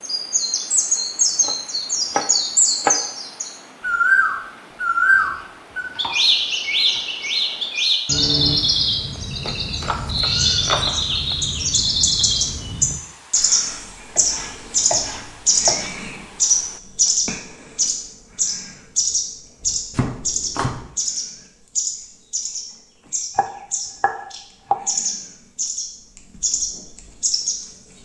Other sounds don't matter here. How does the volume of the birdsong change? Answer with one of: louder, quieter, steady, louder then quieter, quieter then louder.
quieter.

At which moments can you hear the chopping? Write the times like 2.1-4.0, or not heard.
1.4-3.0, 5.1-7.2, 9.4-11.2, 14.2-15.9, 19.9-20.9, 23.4-24.8.